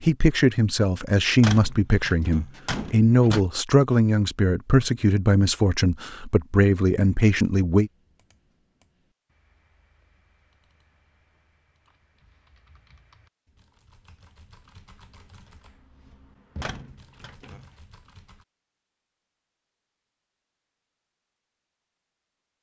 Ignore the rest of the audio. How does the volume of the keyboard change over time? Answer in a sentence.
The loudness of the keyboard goes up.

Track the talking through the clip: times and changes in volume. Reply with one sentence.
The talking can be heard from 0.0 to 7.9 s, at a steady volume.